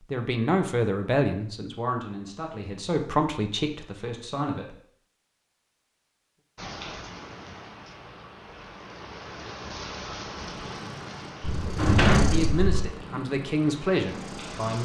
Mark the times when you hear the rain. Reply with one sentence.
The rain can be heard from 6.5 to 14.7 s.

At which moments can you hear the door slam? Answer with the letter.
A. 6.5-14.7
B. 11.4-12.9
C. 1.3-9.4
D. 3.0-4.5
B.